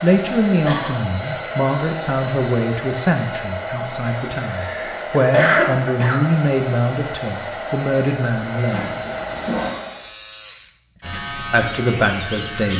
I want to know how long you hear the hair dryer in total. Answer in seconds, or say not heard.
10 s.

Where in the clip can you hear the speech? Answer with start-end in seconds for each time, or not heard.
0.0-8.9, 11.0-12.7.